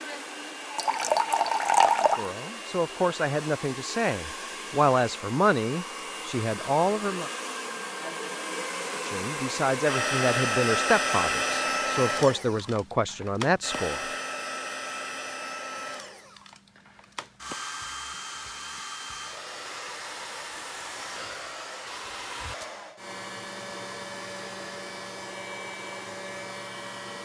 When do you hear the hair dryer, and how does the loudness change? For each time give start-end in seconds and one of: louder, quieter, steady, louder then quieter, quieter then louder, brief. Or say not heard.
0.0-27.2 louder then quieter.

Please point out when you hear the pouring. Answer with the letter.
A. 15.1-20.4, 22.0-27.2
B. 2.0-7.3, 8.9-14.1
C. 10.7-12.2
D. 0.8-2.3
D.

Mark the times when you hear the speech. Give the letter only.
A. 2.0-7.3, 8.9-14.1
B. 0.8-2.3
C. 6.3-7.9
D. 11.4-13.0
A.